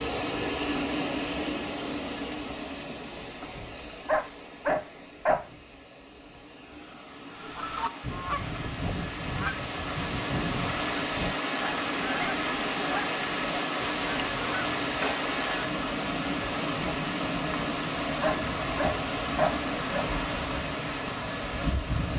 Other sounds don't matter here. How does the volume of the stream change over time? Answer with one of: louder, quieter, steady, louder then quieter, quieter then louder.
quieter then louder.